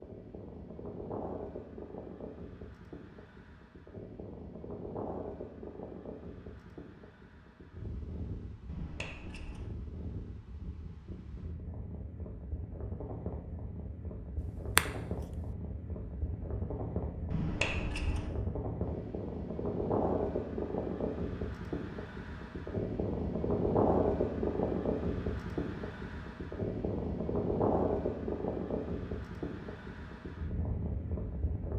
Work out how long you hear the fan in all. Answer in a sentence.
The fan can be heard for 32 seconds in total.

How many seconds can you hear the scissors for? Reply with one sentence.
You can hear the scissors for 2 seconds altogether.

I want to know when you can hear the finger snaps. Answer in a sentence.
You can hear the finger snaps from 14.8 to 15.4 s.